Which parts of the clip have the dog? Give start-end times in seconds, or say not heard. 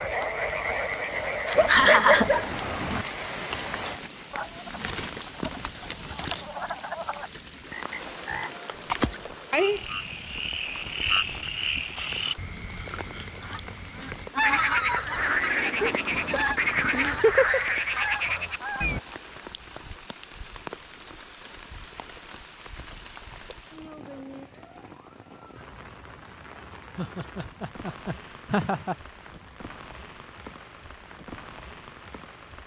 1.6-3.0.